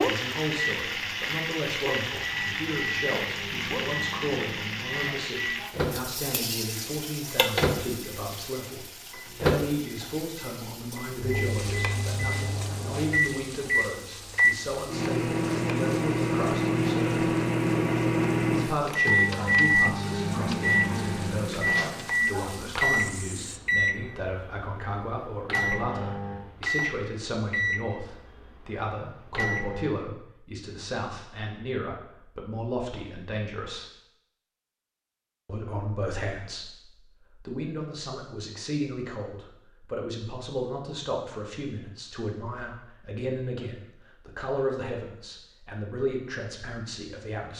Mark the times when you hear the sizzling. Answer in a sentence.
You can hear the sizzling from 0.0 to 23.6 s.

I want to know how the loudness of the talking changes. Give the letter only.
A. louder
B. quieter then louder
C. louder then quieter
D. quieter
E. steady
E.